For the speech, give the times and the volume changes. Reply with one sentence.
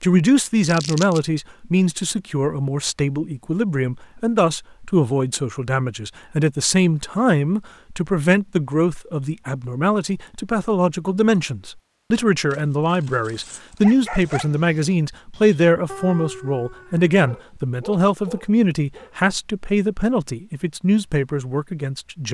You can hear the speech from 0.0 to 22.2 s, at a steady volume.